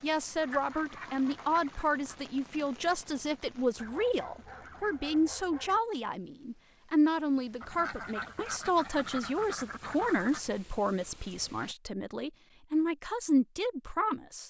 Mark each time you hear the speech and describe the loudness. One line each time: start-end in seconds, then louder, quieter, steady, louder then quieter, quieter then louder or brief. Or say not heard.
0.0-14.4 steady.